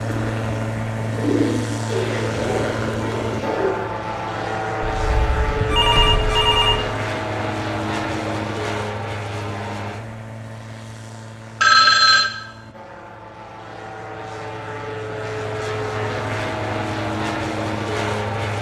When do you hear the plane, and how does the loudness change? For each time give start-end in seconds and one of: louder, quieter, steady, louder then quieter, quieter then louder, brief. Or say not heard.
0.0-18.5 quieter then louder.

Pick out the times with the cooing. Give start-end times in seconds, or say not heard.
0.0-3.7.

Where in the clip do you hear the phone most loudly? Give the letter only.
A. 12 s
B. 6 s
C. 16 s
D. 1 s
A.